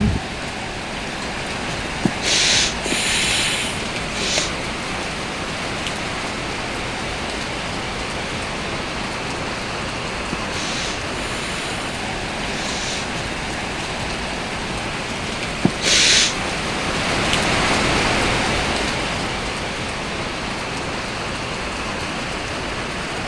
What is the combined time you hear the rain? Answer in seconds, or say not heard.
23 s.